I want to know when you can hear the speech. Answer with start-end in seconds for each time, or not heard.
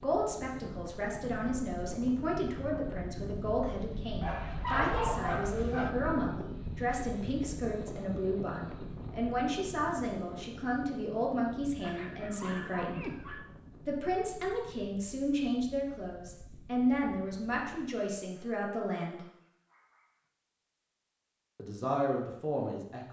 0.0-13.1, 13.8-19.2, 21.6-23.0.